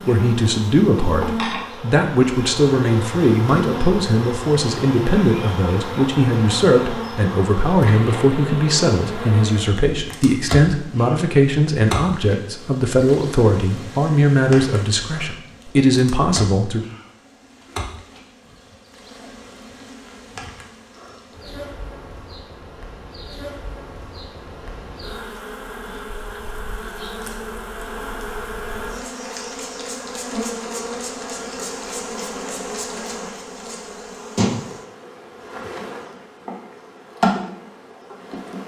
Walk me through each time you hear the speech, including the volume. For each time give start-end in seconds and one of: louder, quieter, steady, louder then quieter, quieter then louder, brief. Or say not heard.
0.1-16.9 steady.